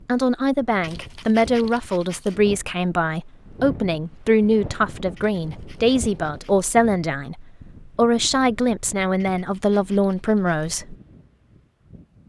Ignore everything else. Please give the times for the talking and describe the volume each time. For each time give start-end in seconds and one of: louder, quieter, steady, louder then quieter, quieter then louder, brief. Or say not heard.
0.1-10.9 steady.